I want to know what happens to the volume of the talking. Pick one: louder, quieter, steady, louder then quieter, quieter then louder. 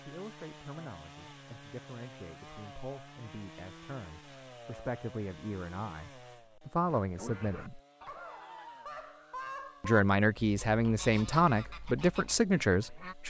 louder.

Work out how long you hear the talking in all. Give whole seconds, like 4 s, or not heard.
11 s.